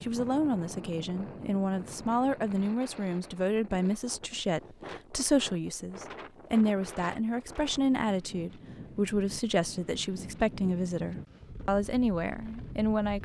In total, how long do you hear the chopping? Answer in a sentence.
The chopping can't be heard in this clip.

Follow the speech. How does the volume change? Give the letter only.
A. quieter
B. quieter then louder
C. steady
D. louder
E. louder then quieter
C.